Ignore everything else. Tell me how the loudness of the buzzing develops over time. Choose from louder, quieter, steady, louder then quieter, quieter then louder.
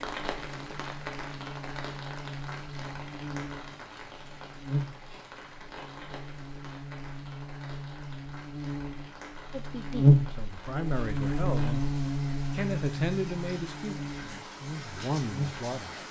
louder then quieter.